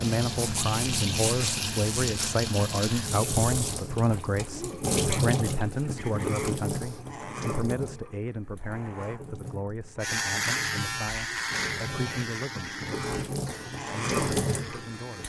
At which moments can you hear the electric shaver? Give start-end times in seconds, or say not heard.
10.0-15.2.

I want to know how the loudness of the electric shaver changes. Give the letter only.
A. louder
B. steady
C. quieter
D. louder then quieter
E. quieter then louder
C.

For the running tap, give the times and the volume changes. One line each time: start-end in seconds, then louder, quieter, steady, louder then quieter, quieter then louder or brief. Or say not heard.
0.0-15.2 quieter then louder.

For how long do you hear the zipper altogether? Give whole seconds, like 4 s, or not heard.
2 s.